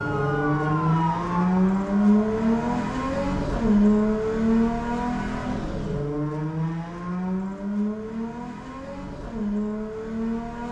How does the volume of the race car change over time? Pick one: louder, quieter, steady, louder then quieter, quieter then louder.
quieter.